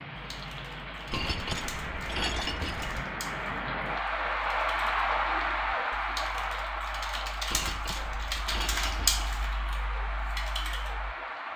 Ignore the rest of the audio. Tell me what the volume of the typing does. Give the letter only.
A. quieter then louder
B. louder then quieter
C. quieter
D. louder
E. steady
D.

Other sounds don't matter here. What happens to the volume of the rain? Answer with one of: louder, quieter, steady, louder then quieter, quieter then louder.
louder then quieter.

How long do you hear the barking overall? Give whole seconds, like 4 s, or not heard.
not heard.